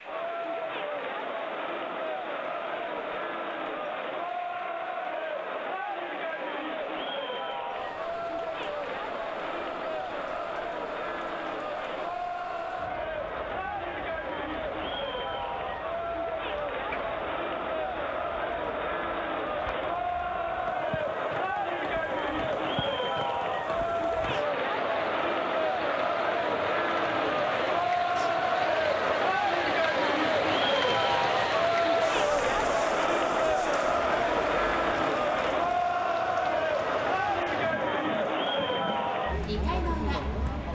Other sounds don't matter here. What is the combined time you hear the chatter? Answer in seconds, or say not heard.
41 s.